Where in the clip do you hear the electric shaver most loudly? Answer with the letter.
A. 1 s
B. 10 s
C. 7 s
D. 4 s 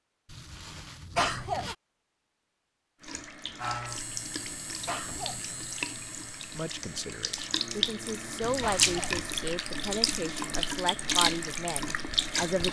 D.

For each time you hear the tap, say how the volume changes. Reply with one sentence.
The tap can be heard from 3.0 to 12.6 s, getting louder.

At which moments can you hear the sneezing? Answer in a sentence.
You can hear the sneezing from 1.1 to 1.7 s, from 4.8 to 5.4 s and from 8.6 to 9.2 s.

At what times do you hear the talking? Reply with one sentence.
You can hear the talking from 6.5 to 12.6 s.